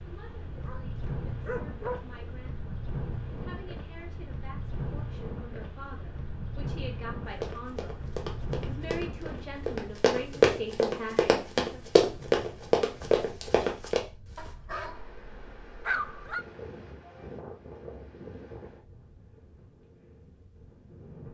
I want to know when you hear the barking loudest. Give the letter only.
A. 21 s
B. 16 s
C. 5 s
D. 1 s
B.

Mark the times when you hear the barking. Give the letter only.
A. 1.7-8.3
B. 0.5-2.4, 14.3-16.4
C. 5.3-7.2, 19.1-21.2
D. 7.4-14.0
B.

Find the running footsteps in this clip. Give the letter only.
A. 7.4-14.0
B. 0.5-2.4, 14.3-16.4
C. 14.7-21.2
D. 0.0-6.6
A.